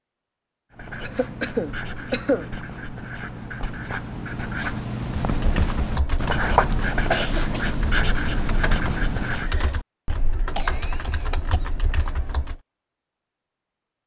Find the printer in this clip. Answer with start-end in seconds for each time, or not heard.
not heard.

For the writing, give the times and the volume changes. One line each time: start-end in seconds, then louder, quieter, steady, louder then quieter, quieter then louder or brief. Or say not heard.
0.7-9.6 louder.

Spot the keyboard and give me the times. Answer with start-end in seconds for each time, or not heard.
5.2-12.6.